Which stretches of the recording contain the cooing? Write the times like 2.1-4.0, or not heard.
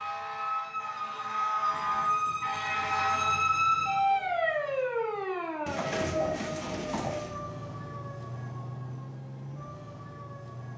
1.7-3.4, 5.7-7.3.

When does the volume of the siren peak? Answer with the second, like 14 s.
4 s.